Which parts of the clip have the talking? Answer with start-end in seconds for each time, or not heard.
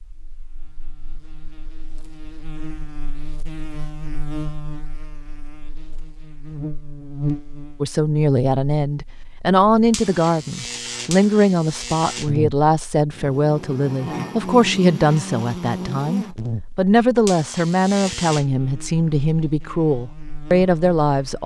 7.8-21.4.